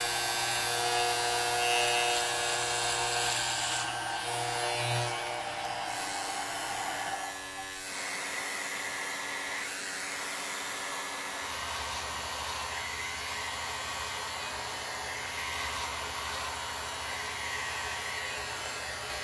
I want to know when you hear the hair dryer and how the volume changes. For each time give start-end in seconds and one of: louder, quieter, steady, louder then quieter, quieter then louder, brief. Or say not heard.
0.0-19.1 steady.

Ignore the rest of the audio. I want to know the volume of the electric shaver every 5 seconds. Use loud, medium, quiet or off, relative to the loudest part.
loud, medium, medium, medium.